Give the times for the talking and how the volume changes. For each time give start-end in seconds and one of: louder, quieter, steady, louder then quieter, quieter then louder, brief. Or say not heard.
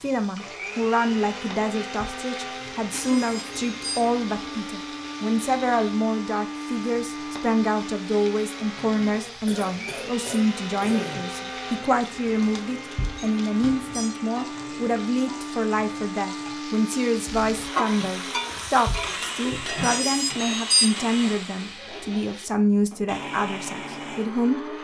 0.0-24.7 steady.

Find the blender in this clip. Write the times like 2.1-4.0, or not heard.
0.0-24.7.